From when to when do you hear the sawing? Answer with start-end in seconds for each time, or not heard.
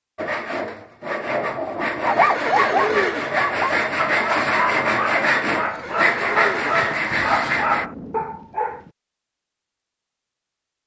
0.1-7.9.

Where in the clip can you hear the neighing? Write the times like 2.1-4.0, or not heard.
2.0-3.4, 5.5-7.0.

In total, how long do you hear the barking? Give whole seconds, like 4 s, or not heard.
7 s.